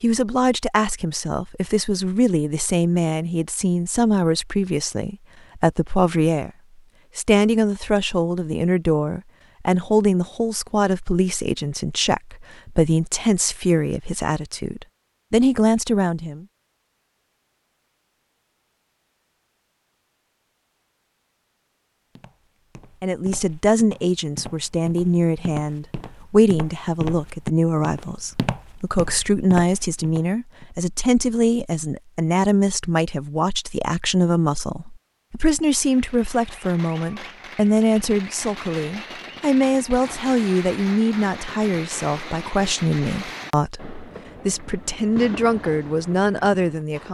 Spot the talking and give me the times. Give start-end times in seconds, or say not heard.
0.0-6.5, 7.2-16.4, 23.0-47.0.